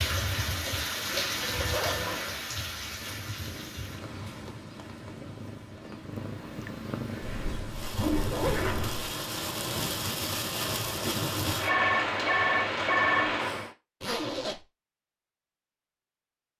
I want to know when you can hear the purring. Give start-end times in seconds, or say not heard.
3.0-7.6.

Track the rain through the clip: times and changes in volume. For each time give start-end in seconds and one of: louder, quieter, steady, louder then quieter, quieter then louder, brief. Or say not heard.
0.0-13.8 quieter then louder.